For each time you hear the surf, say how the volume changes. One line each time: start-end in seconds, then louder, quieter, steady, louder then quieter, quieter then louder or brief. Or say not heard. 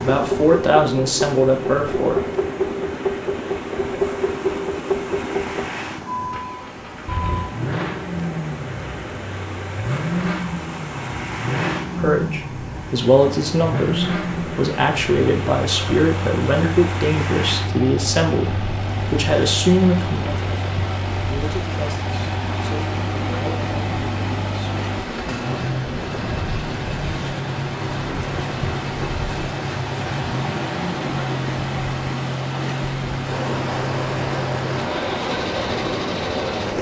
0.0-36.7 louder.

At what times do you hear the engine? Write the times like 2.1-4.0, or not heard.
0.0-36.7.